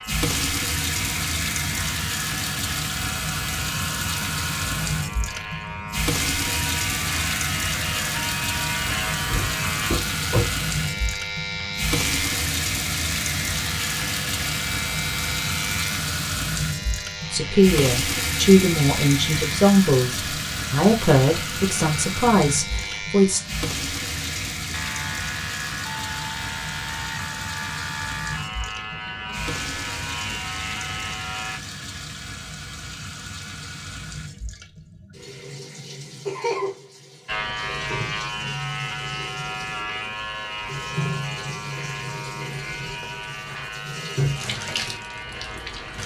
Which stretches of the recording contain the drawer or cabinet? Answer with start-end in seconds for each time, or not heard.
9.3-10.6.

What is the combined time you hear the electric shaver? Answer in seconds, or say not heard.
40 s.